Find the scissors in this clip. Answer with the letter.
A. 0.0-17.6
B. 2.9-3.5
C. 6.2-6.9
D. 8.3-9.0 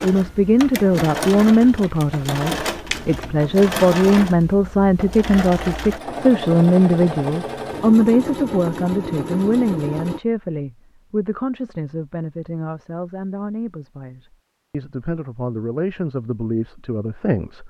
B.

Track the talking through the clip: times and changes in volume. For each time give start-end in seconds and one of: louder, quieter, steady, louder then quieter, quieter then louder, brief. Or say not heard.
0.0-17.6 quieter.